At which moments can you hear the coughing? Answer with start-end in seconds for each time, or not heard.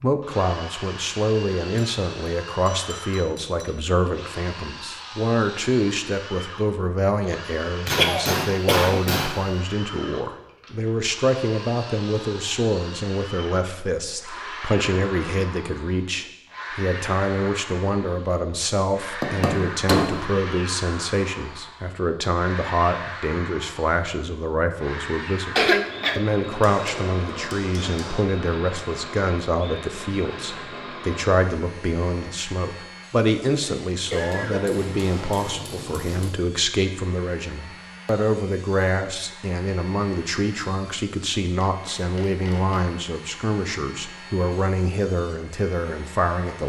8.0-9.0, 25.6-26.2, 33.6-34.8.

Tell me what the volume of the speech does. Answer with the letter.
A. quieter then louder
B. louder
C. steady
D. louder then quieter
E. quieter
C.